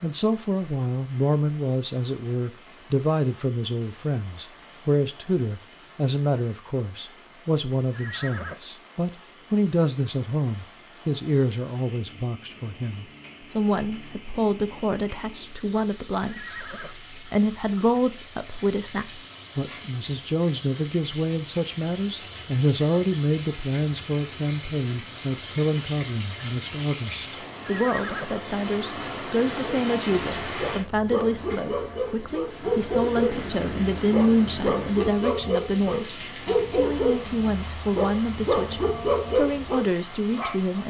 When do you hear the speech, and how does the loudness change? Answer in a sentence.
The speech can be heard from 0.0 to 40.8 s, at a steady volume.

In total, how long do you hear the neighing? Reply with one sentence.
You can hear the neighing for 2 seconds altogether.